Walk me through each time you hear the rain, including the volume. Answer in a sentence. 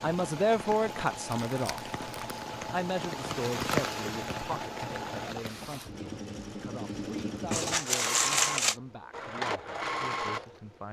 The rain can be heard from 0.0 to 5.9 s, getting louder then quieter.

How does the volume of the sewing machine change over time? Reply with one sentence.
The loudness of the sewing machine goes up.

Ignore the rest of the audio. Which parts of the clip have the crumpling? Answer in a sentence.
The crumpling can be heard from 1.3 to 2.5 s and from 7.5 to 8.8 s.